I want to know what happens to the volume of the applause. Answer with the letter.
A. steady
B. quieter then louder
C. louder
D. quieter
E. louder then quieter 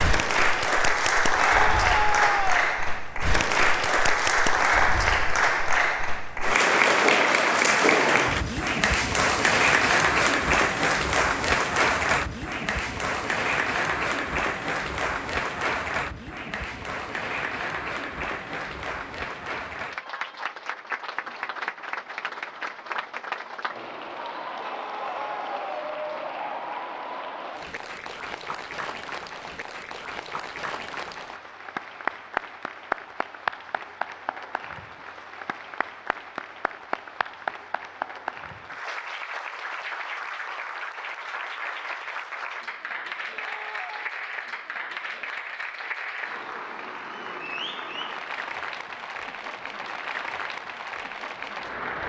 D.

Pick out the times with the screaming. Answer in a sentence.
The screaming can be heard from 1.4 to 2.6 s, from 24.6 to 25.9 s and from 43.3 to 44.1 s.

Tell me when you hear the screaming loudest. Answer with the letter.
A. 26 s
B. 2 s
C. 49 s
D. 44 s
B.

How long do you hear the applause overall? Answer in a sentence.
You can hear the applause for 52 seconds altogether.